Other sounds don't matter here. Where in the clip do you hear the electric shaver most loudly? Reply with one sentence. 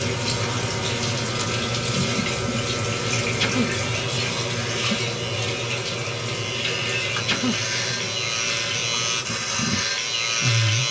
The loudest moment of the electric shaver is at 10 seconds.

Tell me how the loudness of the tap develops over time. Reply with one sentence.
The loudness of the tap goes down.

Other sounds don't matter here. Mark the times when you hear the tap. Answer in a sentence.
The tap can be heard from 0.0 to 10.8 s.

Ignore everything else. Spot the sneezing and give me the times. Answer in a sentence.
You can hear the sneezing from 3.2 to 3.7 s and from 7.0 to 7.6 s.